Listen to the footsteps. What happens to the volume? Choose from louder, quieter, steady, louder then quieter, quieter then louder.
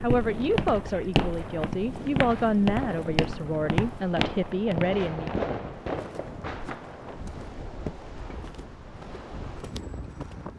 quieter.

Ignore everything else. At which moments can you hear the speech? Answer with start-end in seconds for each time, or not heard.
0.0-5.4.